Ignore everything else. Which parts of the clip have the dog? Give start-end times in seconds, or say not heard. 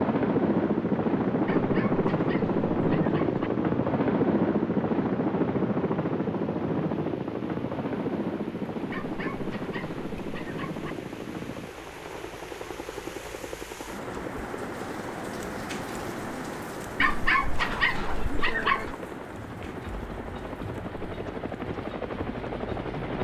1.4-3.5, 8.9-10.9, 16.9-18.9.